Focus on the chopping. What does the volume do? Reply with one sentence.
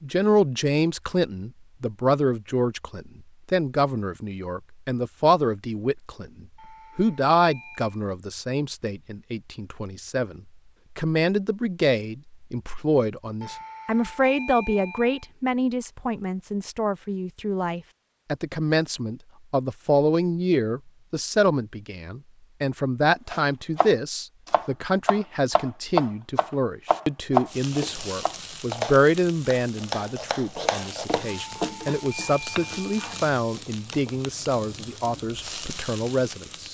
The volume of the chopping goes up, then down.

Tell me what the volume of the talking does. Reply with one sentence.
The loudness of the talking stays about the same.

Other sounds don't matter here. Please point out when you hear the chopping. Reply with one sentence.
The chopping can be heard from 23.3 to 31.2 s.